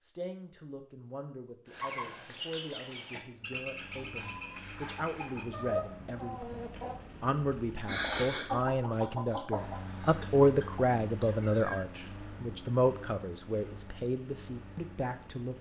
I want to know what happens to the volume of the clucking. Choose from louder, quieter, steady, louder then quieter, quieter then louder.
louder then quieter.